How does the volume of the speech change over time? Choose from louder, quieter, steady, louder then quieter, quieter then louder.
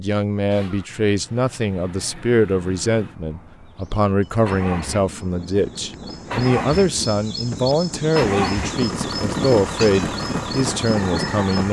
steady.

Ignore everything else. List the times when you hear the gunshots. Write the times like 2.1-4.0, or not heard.
not heard.